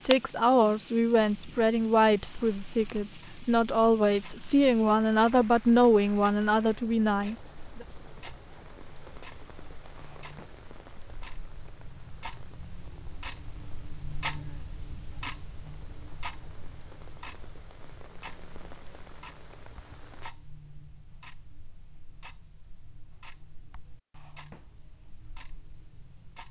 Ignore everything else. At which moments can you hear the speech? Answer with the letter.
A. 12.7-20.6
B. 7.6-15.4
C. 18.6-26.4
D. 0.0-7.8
D.